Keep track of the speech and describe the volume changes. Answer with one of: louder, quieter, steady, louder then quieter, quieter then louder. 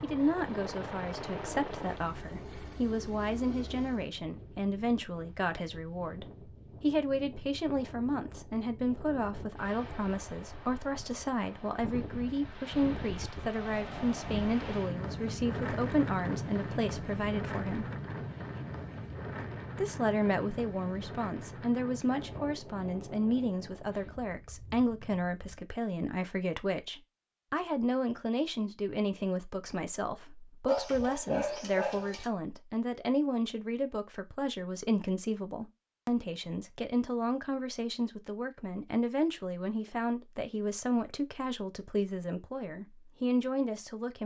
steady.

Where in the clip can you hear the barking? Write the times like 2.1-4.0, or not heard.
30.6-32.2.